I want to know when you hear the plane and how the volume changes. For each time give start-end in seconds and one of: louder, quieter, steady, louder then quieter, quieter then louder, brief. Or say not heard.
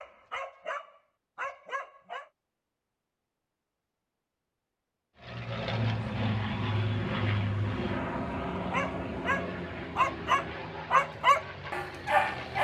5.2-12.6 quieter.